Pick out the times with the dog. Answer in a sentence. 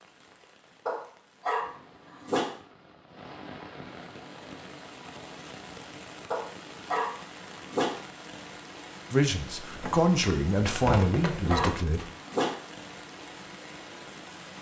The dog can be heard from 0.8 to 2.5 s, from 6.3 to 8.0 s and from 10.9 to 12.6 s.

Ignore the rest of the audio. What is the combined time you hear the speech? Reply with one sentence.
You can hear the speech for 3 seconds altogether.